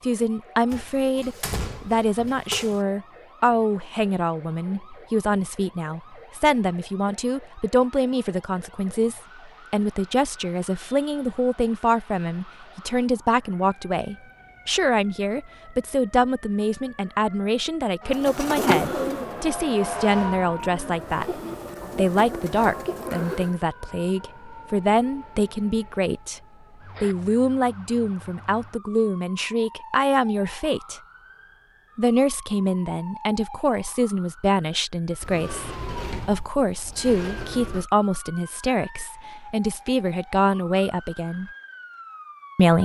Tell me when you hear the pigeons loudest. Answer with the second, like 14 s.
19 s.